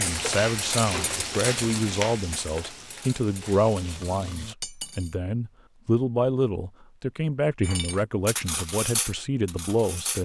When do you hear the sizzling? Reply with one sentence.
You can hear the sizzling from 0.0 to 4.5 s.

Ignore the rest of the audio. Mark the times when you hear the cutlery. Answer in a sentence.
You can hear the cutlery from 0.0 to 5.2 s and from 7.6 to 10.2 s.